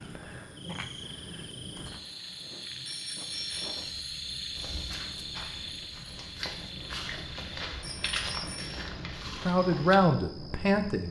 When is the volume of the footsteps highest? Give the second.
8 s.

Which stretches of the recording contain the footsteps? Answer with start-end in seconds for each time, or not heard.
4.5-9.9.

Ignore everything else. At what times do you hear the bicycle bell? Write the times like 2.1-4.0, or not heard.
2.9-3.9, 7.8-8.8.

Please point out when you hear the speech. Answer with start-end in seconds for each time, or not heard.
9.2-11.0.